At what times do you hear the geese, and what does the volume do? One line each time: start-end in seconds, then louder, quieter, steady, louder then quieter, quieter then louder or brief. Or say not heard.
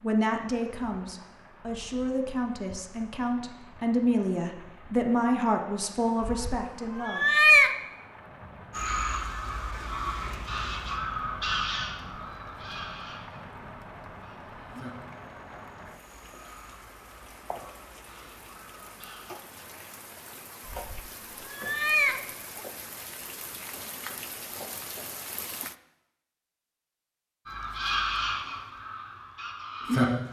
8.7-19.2 quieter
27.4-30.2 brief.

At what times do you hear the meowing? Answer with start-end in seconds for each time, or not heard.
6.2-7.8, 20.9-22.6.